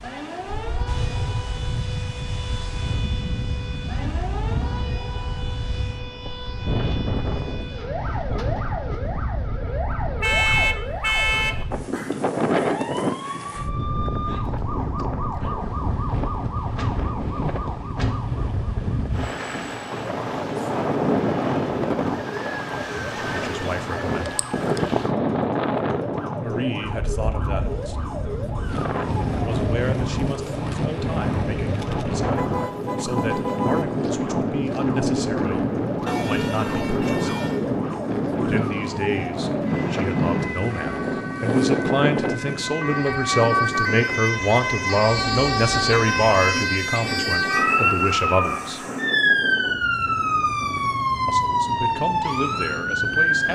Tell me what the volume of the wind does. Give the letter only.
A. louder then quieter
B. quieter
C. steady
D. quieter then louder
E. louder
A.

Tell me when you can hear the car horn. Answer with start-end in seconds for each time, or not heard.
10.2-11.7, 32.4-33.9, 36.0-37.6.